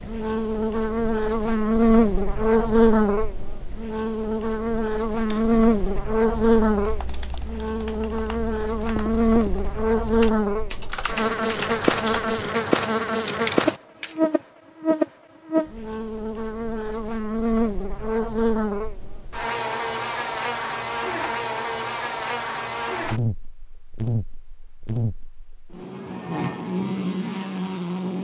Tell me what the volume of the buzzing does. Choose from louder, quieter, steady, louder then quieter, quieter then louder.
quieter.